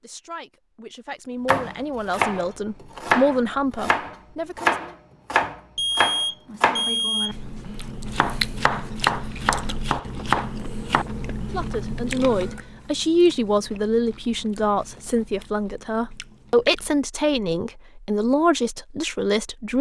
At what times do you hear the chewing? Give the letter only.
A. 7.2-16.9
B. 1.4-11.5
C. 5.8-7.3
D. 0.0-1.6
A.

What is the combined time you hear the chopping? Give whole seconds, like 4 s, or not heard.
10 s.